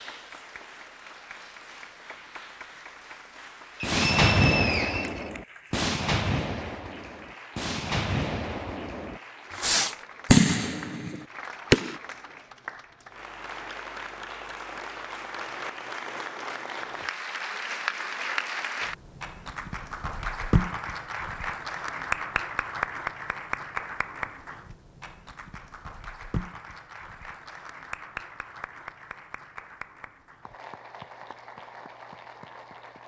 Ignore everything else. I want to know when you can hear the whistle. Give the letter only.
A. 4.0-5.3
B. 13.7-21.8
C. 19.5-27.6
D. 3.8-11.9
A.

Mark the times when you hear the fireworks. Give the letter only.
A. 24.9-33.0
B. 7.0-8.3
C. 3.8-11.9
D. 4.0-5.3
C.